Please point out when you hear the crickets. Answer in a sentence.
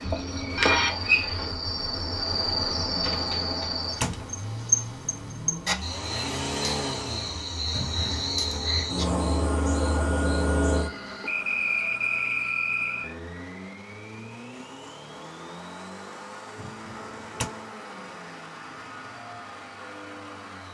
You can hear the crickets from 0.0 to 13.2 s.